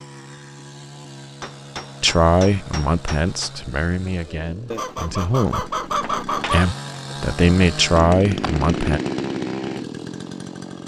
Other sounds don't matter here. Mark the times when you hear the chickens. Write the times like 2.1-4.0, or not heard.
4.7-6.7.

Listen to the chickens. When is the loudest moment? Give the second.
6 s.